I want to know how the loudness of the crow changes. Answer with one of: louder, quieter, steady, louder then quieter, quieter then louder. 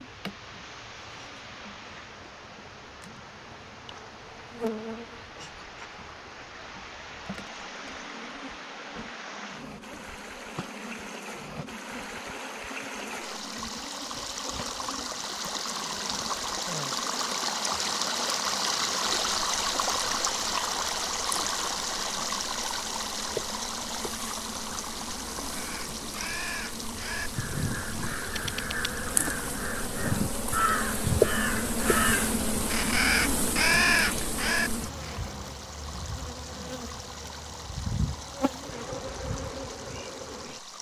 louder.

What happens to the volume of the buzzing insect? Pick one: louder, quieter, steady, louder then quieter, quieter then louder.
louder.